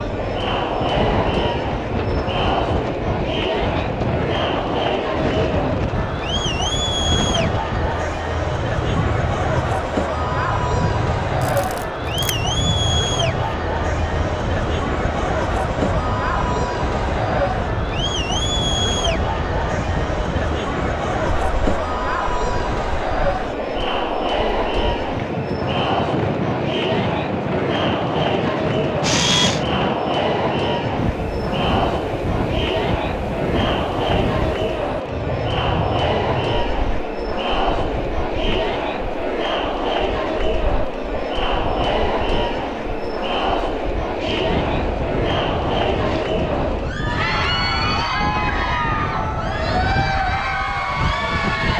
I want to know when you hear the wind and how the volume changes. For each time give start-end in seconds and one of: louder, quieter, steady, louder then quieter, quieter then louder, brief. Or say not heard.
0.0-51.7 steady.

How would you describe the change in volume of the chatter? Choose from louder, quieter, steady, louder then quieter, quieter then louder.
steady.